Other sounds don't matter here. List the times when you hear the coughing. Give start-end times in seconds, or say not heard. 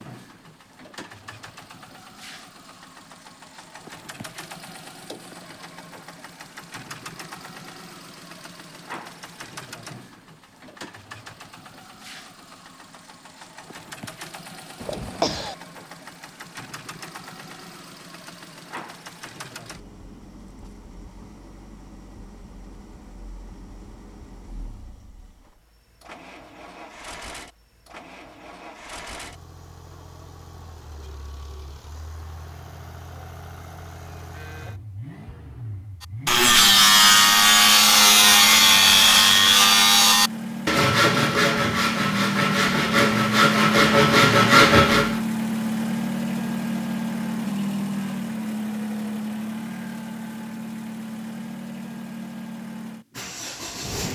14.8-15.6.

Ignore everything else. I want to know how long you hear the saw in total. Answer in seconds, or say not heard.
9 s.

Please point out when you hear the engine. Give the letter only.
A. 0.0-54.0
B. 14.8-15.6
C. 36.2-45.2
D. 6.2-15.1
A.